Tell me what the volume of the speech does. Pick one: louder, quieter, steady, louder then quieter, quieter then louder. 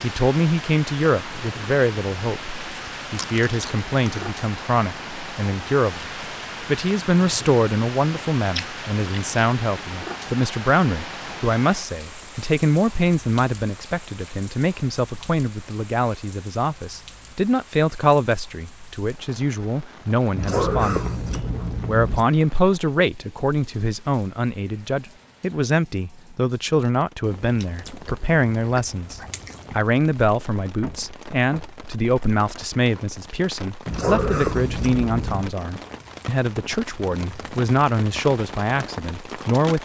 steady.